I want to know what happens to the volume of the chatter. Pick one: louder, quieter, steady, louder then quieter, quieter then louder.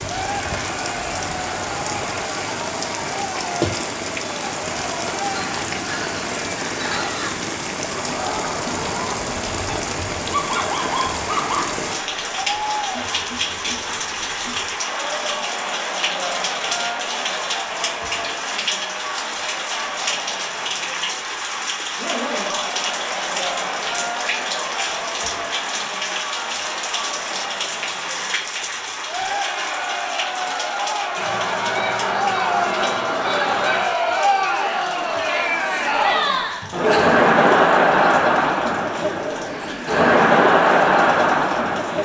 louder.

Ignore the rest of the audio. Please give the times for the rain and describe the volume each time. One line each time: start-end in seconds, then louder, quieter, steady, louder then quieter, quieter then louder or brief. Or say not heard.
0.0-42.0 quieter.